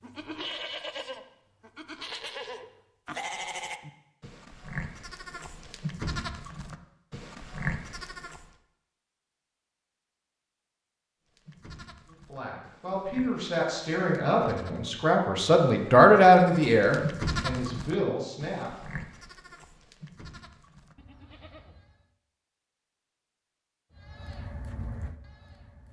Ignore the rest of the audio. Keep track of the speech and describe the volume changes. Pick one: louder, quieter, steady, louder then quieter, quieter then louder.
louder then quieter.